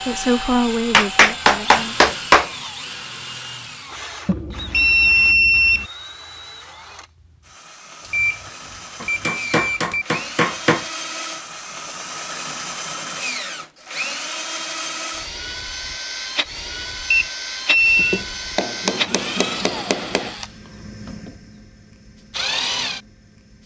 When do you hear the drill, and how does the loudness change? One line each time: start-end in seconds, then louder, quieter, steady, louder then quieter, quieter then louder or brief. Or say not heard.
0.0-23.6 quieter then louder.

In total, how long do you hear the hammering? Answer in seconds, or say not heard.
6 s.